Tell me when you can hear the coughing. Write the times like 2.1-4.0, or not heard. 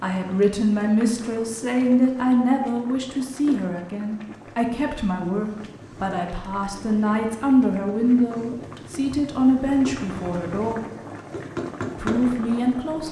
not heard.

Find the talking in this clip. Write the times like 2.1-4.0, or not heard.
0.0-10.8, 11.9-13.0.